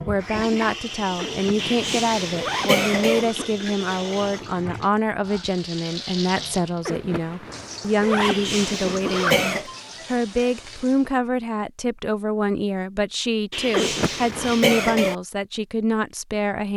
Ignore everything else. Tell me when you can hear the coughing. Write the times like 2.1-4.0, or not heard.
1.6-3.2, 8.2-9.7, 13.5-15.2.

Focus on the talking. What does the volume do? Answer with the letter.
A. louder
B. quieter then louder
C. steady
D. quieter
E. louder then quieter
C.